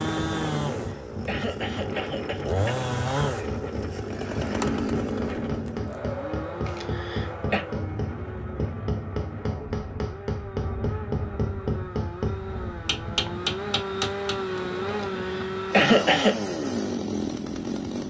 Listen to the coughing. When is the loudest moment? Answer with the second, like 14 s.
16 s.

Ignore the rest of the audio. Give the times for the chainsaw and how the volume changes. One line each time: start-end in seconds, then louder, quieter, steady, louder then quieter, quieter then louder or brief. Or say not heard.
0.0-18.0 quieter then louder.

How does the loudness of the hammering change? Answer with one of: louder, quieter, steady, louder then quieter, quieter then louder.
louder.